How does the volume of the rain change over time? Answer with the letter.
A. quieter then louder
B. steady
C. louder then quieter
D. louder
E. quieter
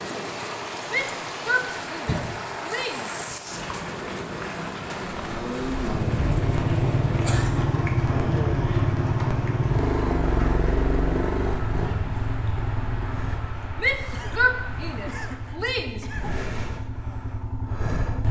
E.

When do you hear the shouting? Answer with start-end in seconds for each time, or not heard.
0.8-3.1, 13.8-16.2.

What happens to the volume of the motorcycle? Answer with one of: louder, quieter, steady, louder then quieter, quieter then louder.
quieter.